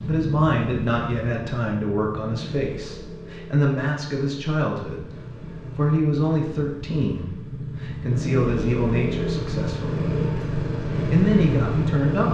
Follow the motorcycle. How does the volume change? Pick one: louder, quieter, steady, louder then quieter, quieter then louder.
quieter then louder.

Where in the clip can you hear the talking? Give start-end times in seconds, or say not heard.
0.0-5.1, 5.8-10.1, 10.9-12.2.